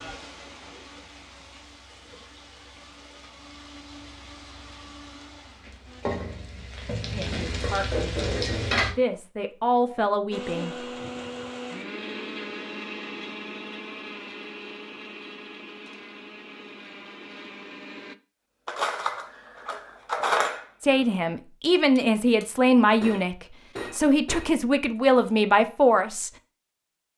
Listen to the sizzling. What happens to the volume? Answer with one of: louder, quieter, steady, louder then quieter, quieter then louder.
louder.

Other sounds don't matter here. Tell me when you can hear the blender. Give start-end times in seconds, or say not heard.
0.0-6.0, 10.3-18.1.